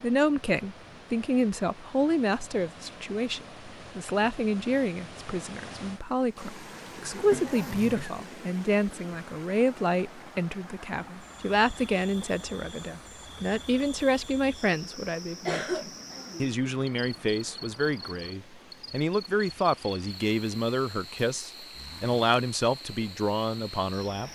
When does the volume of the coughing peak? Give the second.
16 s.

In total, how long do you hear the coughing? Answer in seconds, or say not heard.
2 s.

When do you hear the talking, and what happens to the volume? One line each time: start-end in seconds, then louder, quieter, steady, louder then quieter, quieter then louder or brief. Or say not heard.
0.0-24.3 steady.